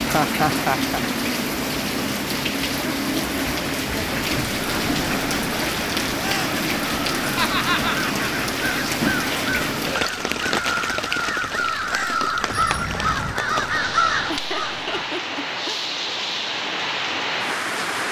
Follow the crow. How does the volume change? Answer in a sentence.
The loudness of the crow goes up.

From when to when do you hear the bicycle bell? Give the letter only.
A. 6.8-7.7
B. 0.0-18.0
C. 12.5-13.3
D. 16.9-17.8
C.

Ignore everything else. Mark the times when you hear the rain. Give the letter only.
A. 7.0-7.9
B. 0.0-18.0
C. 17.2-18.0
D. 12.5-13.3
B.